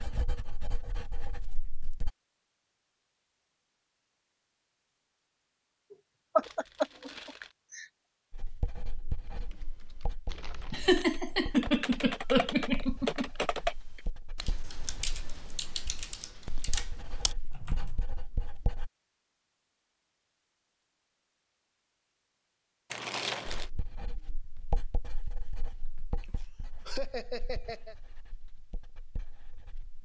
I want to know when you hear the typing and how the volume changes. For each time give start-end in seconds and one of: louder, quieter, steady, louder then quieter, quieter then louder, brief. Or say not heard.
9.2-18.1 louder then quieter.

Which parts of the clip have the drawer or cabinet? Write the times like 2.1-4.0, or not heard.
not heard.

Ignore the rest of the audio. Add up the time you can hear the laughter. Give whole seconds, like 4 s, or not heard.
6 s.